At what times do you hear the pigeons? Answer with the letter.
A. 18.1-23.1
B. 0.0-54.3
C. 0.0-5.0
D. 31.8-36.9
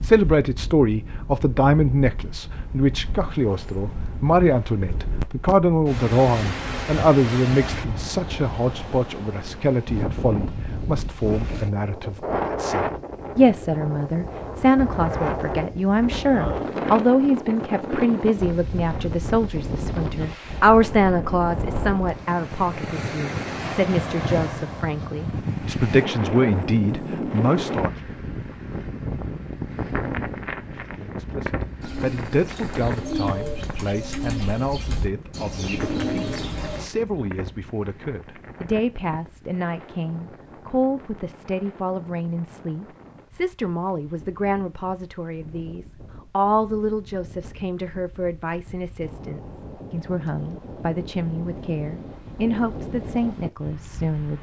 D.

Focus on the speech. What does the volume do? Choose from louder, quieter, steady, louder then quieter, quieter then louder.
quieter.